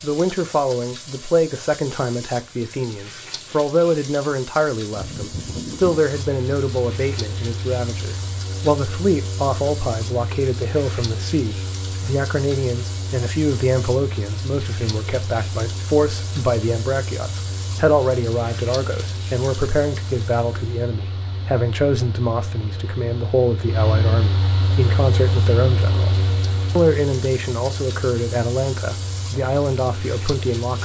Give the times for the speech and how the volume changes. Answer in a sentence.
The speech can be heard from 0.0 to 30.8 s, at a steady volume.